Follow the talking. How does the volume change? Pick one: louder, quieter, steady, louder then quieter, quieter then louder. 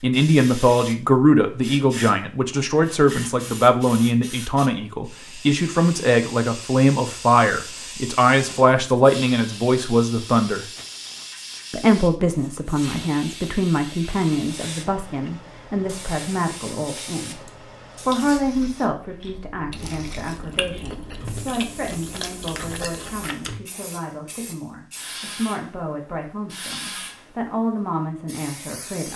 quieter.